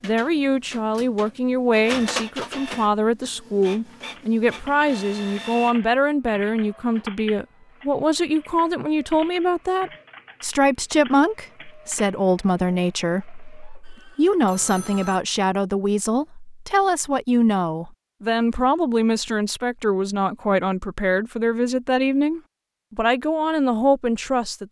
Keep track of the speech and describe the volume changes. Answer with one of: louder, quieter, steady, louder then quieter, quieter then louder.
steady.